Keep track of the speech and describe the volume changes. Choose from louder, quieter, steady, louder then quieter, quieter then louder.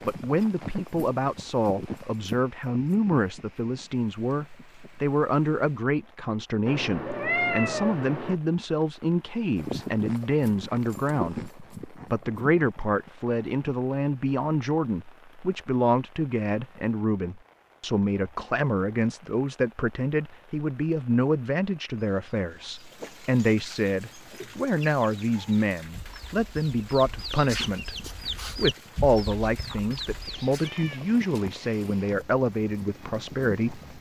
steady.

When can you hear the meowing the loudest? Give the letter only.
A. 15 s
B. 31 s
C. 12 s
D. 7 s
D.